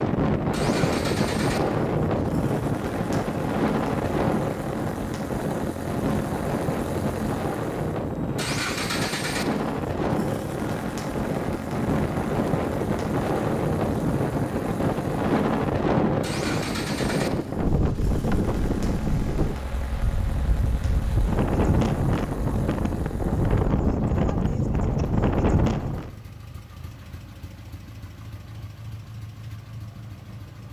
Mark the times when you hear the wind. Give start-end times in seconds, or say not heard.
0.0-26.1.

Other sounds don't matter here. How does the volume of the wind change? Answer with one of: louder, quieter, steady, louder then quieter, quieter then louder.
steady.